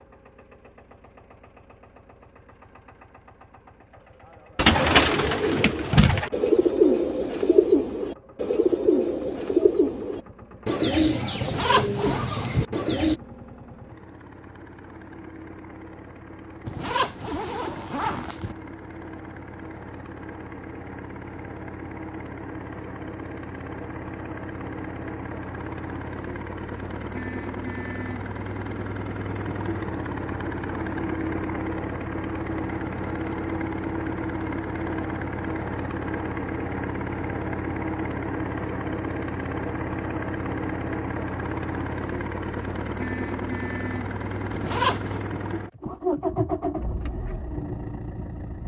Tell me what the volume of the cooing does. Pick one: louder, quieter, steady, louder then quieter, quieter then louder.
quieter.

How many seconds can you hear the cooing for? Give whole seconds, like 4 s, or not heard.
9 s.